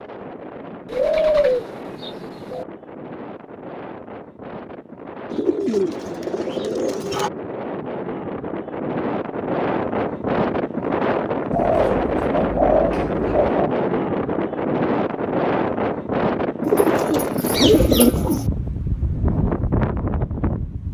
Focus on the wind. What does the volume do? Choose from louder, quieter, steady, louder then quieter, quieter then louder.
louder.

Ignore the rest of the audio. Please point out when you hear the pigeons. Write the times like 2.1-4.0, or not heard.
0.8-2.6, 5.3-7.3, 11.5-13.7, 16.6-18.4.